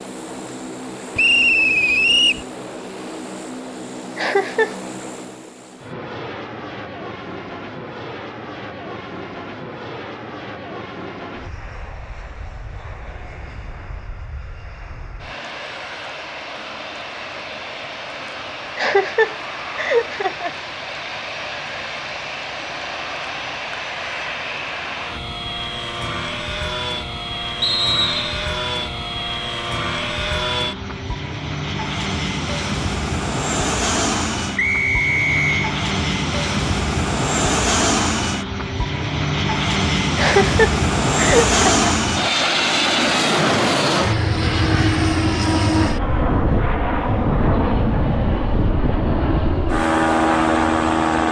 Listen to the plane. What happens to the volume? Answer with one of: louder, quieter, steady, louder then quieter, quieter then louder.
louder.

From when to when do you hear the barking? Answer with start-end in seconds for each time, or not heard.
not heard.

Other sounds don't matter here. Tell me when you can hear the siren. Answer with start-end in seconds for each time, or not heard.
not heard.